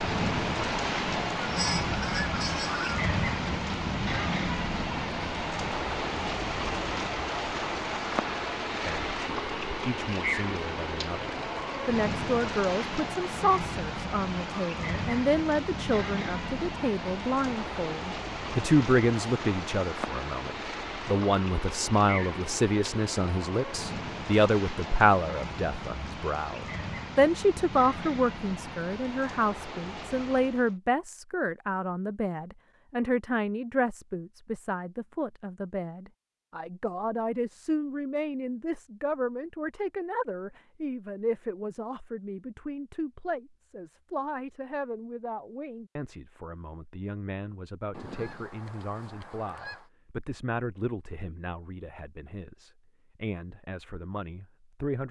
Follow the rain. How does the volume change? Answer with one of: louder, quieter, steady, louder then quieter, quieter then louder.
quieter.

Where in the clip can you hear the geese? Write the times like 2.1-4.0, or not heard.
1.4-3.0, 47.9-49.9.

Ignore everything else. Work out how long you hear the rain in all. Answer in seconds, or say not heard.
31 s.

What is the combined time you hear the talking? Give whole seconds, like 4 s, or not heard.
46 s.